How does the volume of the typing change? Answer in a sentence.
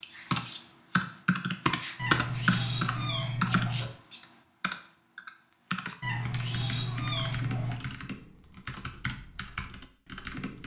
The loudness of the typing goes down.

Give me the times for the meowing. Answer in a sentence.
You can hear the meowing from 1.9 to 3.9 s and from 6.0 to 7.8 s.